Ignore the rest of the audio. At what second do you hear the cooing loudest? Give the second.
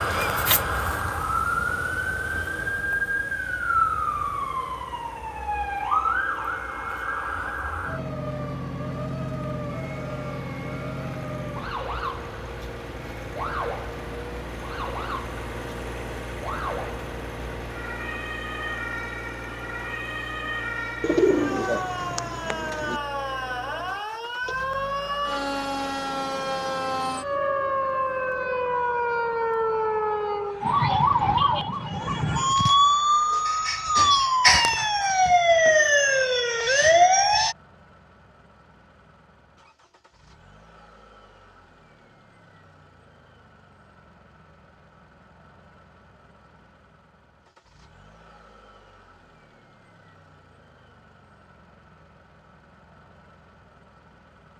21 s.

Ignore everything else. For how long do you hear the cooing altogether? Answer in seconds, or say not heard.
2 s.